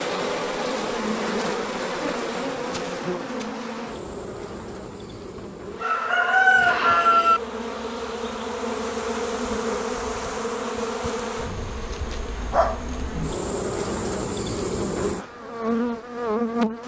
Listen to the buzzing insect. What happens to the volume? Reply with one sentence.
The loudness of the buzzing insect goes down, then up.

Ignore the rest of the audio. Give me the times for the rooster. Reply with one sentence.
You can hear the rooster from 5.8 to 7.4 s.